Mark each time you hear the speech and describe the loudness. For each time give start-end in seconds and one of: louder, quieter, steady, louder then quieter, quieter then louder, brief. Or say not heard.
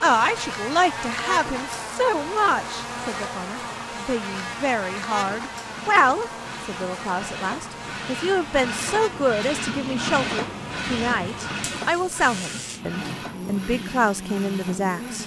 0.0-15.2 steady.